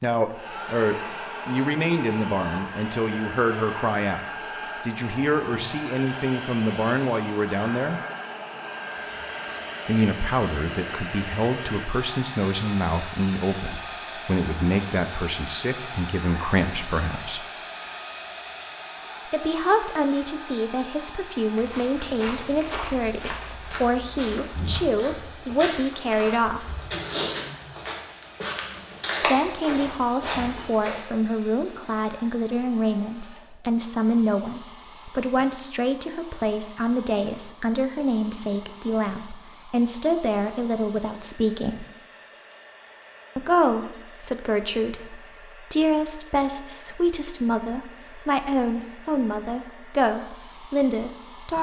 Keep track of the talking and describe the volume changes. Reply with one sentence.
The loudness of the talking stays about the same.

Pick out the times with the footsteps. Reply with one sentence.
The footsteps can be heard from 21.6 to 31.1 s.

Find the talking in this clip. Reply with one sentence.
The talking can be heard from 0.0 to 8.0 s, from 9.8 to 17.4 s, from 19.2 to 26.8 s, from 29.2 to 41.9 s and from 43.4 to 51.5 s.